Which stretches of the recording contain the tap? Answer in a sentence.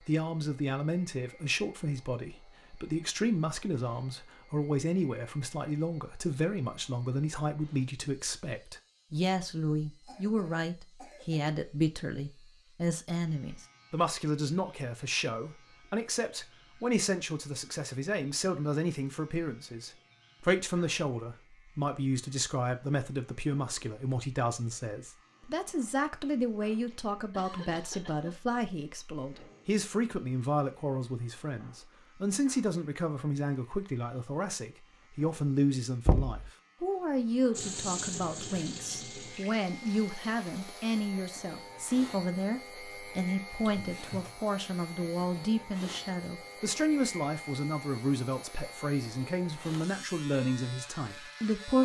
You can hear the tap from 37.5 to 41.0 s.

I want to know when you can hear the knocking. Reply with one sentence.
You can hear the knocking from 36.0 to 36.5 s.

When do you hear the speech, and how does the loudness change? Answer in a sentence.
You can hear the speech from 0.1 to 51.8 s, at a steady volume.